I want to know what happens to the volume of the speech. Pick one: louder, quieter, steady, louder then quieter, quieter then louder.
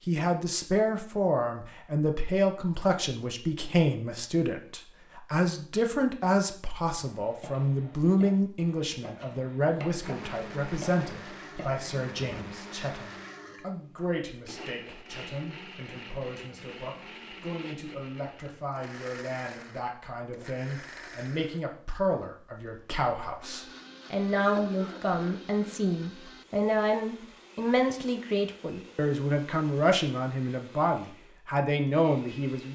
quieter then louder.